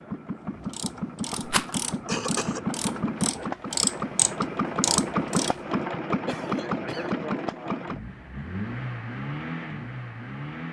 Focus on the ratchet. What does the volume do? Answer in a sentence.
The loudness of the ratchet goes up.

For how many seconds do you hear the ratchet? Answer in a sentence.
The ratchet can be heard for 5 seconds in total.